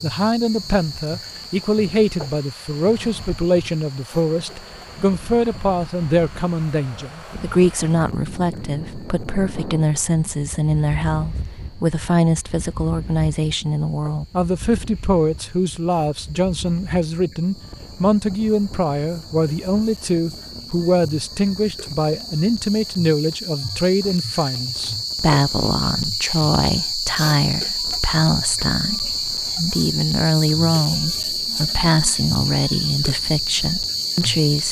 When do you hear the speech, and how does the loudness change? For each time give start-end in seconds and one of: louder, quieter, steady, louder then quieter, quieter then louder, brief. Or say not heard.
0.0-34.6 steady.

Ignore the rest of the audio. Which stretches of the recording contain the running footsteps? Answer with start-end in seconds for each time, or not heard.
not heard.